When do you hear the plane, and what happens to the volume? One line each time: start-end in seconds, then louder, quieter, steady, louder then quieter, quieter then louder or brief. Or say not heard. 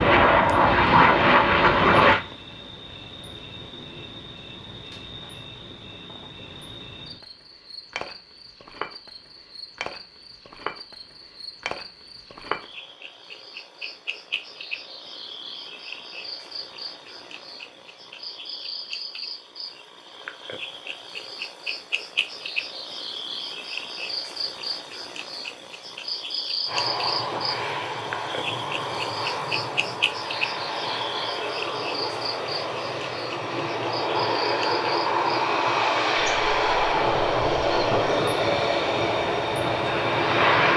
0.0-2.2 brief
26.6-40.7 louder.